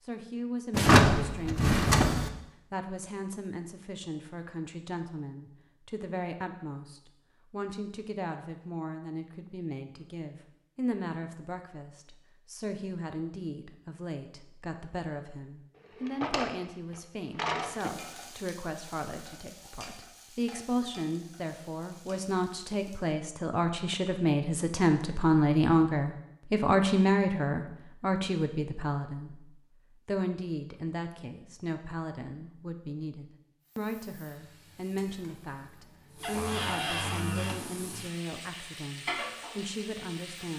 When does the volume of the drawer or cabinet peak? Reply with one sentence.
The volume of the drawer or cabinet peaks at 1 second.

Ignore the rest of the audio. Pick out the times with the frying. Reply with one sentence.
You can hear the frying from 17.7 to 23.1 s and from 33.6 to 40.5 s.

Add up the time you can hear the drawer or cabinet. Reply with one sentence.
The drawer or cabinet can be heard for 5 seconds in total.